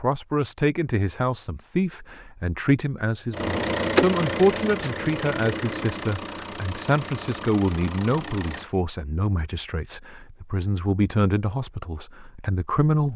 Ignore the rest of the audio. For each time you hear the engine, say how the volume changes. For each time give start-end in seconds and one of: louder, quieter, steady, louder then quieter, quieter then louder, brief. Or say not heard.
3.3-8.7 quieter.